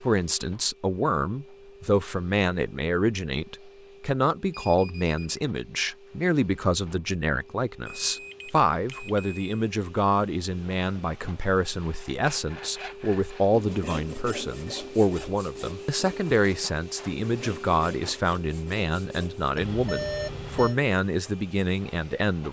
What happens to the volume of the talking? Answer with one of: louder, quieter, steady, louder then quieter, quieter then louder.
steady.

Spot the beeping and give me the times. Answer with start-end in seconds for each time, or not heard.
4.5-5.2, 7.8-9.6, 19.6-20.8.